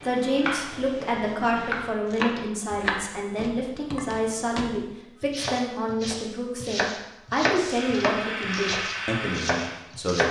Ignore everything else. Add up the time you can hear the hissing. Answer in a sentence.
The hissing can be heard for 3 seconds in total.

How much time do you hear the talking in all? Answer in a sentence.
The talking can be heard for 10 seconds in total.